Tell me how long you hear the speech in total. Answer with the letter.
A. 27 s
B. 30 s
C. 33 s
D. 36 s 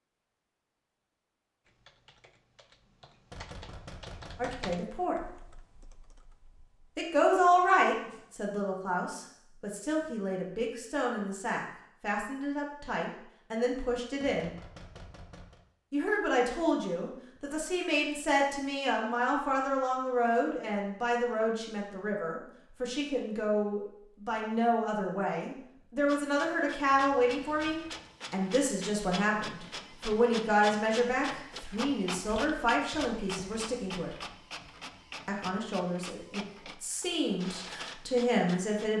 B.